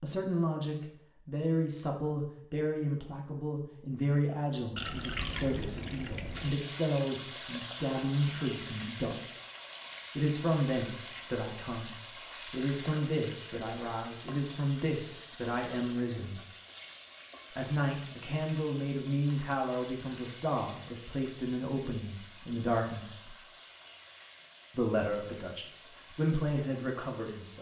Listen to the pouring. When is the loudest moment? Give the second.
5 s.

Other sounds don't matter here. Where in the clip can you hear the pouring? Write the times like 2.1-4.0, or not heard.
4.8-6.5.